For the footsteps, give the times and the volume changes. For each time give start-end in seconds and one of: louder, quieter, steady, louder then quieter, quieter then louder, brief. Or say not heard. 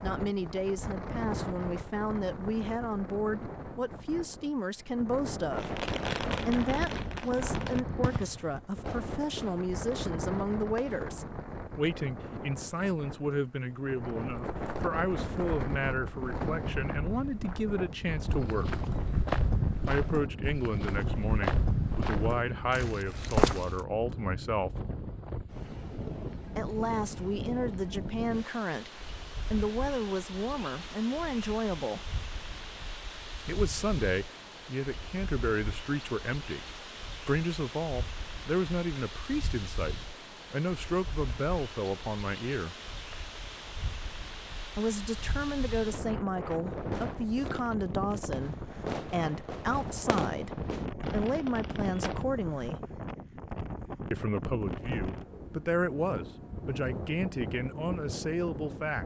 14.4-23.9 louder.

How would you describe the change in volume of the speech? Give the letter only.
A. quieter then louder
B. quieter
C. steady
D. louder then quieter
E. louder
C.